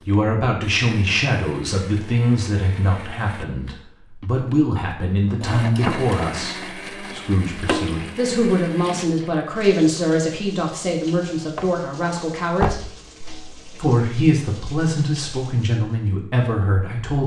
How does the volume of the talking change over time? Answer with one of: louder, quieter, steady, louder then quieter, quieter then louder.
steady.